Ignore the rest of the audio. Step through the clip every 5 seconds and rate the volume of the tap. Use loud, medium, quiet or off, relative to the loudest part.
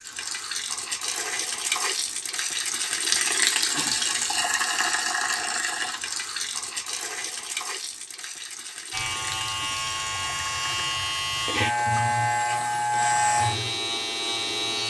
loud, medium, medium.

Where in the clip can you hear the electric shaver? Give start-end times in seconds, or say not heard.
8.9-14.8.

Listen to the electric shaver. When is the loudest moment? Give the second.
13 s.